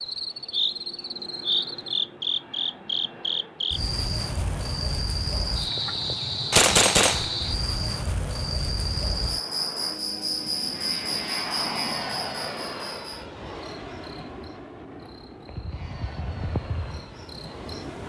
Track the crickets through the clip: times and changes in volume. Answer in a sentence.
The crickets can be heard from 0.0 to 18.0 s, getting quieter.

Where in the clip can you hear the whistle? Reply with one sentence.
You can't hear the whistle here.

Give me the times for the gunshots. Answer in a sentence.
The gunshots can be heard from 6.5 to 7.5 s.